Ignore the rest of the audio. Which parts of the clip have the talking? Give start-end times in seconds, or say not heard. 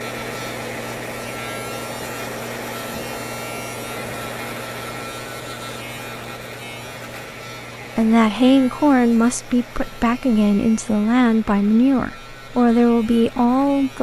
8.0-13.9.